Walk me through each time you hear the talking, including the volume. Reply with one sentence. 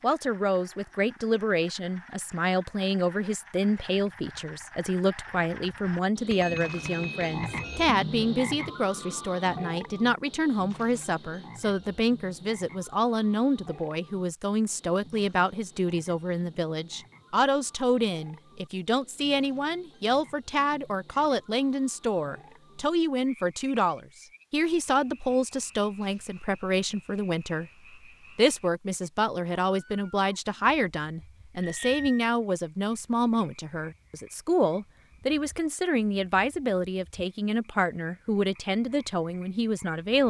You can hear the talking from 0.0 to 27.7 s, at a steady volume; and from 28.4 to 40.2 s, at a steady volume.